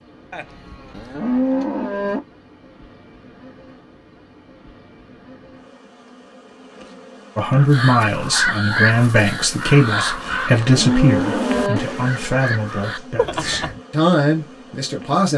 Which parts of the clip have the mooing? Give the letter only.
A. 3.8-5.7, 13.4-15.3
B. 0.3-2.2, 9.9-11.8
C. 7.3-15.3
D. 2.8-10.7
B.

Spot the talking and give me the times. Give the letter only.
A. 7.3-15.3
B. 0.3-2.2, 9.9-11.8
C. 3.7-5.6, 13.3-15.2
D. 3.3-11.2
A.